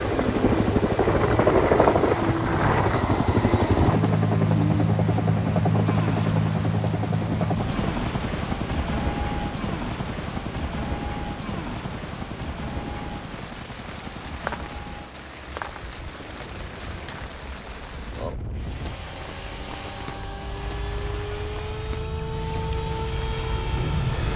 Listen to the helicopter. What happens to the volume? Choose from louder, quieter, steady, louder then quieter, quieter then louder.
quieter then louder.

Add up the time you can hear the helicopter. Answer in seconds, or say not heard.
24 s.